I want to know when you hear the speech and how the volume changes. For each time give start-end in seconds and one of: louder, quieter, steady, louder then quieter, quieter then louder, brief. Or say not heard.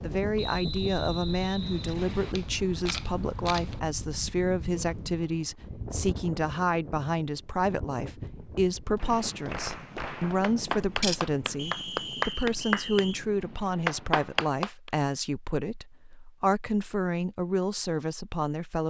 0.0-18.8 steady.